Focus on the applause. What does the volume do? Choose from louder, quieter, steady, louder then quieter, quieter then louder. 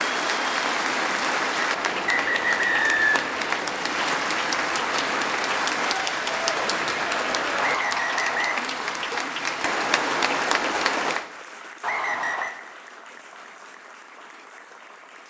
quieter.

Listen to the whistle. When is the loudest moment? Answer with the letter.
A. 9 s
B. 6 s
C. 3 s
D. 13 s
C.